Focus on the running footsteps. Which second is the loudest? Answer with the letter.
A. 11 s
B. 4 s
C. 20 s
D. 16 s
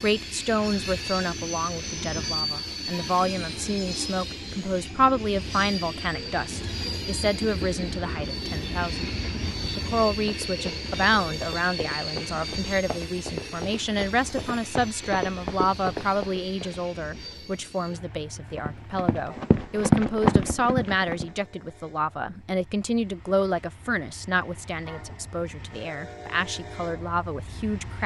C.